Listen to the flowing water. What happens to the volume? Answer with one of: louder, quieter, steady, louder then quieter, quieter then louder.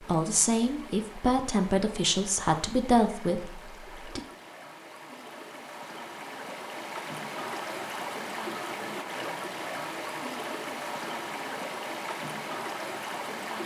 louder.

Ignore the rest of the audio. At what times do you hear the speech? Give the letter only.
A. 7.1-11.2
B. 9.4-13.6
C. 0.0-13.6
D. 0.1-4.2
D.